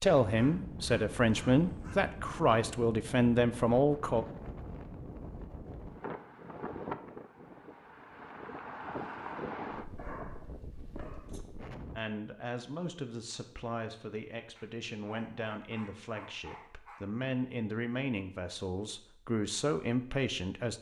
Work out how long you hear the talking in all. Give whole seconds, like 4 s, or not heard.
13 s.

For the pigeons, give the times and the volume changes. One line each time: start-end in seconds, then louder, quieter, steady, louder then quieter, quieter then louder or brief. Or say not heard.
not heard.